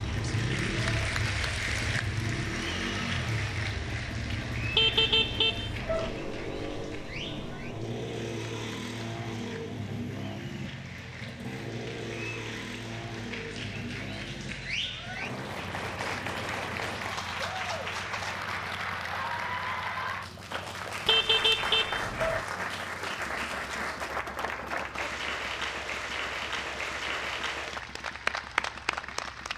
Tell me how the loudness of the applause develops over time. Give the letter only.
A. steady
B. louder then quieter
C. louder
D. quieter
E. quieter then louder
E.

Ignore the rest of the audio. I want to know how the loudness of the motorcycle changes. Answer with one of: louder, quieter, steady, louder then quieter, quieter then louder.
quieter.